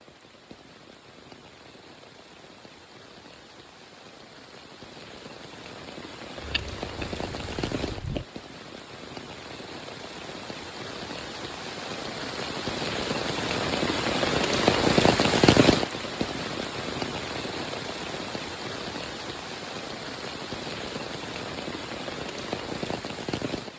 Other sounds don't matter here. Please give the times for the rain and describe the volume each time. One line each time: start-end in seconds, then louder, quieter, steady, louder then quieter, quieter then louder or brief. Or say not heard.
0.0-23.7 louder then quieter.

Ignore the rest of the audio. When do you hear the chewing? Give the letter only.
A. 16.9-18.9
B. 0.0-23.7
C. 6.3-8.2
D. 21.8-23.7
C.